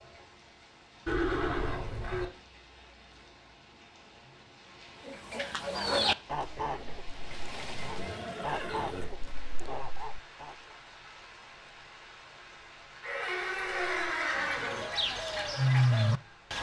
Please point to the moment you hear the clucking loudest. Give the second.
16 s.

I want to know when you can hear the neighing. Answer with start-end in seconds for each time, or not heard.
1.1-2.2, 7.7-9.1, 13.0-14.9.